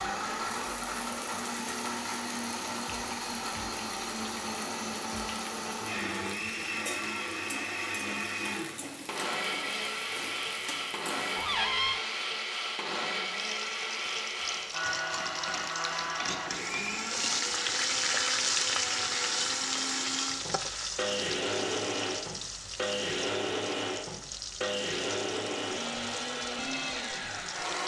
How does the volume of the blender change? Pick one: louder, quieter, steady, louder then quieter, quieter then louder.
steady.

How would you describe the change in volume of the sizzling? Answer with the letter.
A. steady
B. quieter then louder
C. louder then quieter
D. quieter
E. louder
C.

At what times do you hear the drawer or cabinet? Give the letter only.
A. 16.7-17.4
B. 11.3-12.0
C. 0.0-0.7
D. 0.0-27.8
B.